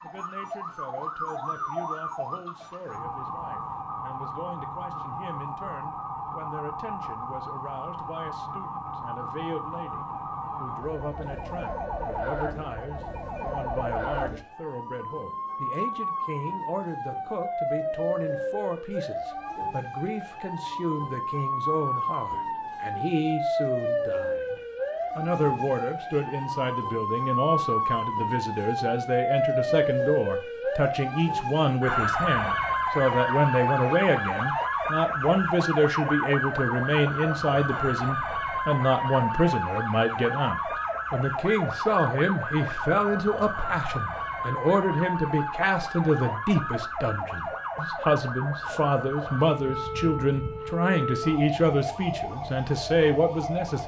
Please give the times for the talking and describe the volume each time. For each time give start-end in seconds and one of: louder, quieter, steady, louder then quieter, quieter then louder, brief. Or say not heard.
0.0-53.8 louder.